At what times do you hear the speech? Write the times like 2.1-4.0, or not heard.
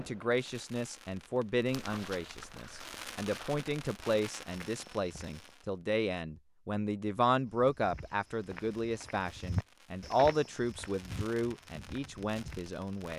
0.0-13.1.